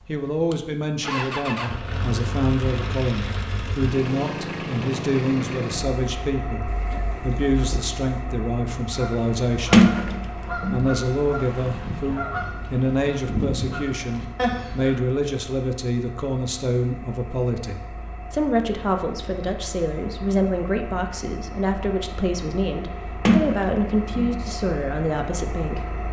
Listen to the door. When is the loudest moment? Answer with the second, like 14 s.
10 s.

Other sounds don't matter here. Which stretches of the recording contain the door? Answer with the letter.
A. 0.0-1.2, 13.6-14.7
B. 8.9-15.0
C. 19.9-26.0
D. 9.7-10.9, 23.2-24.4
D.